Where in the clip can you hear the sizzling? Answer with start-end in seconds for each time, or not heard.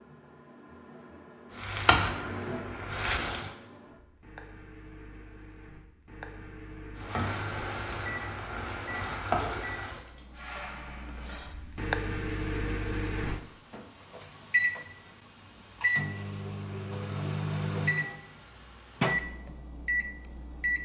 1.6-3.5, 7.0-11.6.